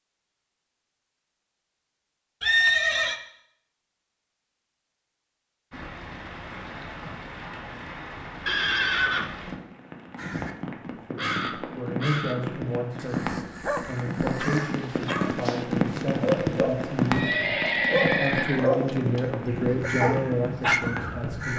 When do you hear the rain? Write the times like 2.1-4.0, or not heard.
5.7-21.5.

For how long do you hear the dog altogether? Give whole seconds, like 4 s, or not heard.
7 s.